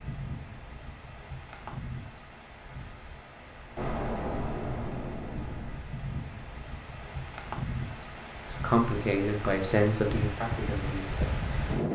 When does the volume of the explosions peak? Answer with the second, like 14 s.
4 s.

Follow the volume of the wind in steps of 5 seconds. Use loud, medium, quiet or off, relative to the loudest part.
medium, medium, loud.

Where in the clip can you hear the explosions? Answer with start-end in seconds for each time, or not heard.
3.8-5.8.